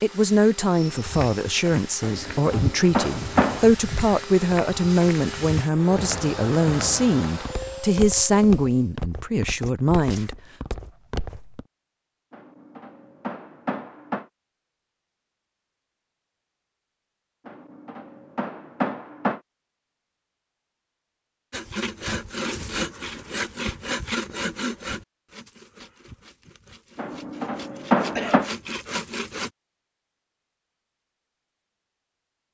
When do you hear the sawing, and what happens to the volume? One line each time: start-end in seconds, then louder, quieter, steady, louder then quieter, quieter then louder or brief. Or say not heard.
21.5-29.5 quieter then louder.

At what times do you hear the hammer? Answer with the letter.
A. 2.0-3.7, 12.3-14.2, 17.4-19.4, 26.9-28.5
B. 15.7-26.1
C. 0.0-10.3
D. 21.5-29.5
A.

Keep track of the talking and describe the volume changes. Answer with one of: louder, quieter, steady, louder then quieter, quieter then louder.
steady.